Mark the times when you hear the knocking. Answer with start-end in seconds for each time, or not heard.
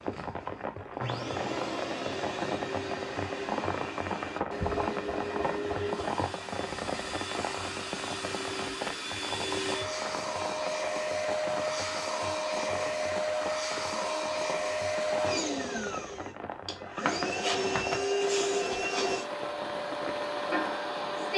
4.6-6.2, 17.1-18.1.